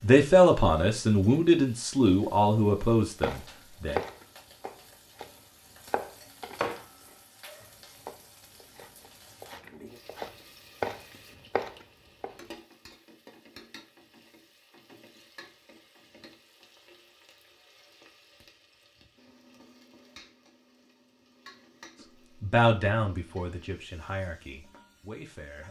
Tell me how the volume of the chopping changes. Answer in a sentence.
The loudness of the chopping goes down, then up.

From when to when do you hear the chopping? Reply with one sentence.
The chopping can be heard from 3.2 to 12.3 s.